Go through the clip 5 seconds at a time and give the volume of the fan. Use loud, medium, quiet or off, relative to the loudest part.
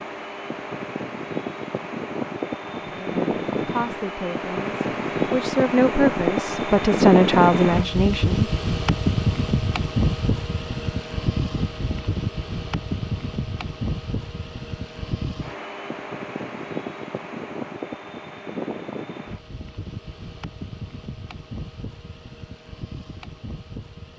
medium, loud, medium, medium, quiet.